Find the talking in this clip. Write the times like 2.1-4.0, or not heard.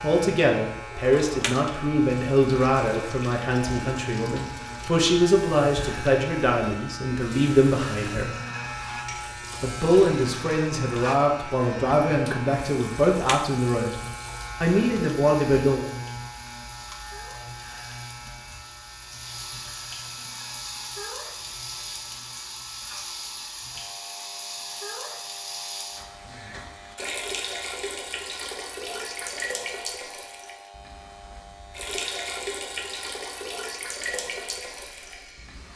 0.0-8.3, 9.6-13.9, 14.6-15.9.